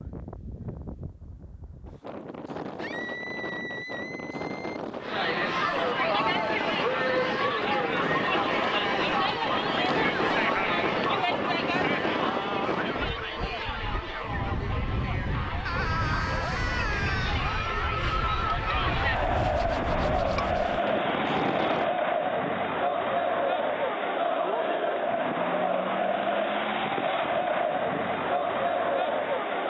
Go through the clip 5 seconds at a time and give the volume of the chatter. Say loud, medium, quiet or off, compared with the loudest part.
off, loud, loud, loud, loud, loud.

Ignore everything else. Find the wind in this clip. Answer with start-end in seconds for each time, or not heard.
0.0-21.9.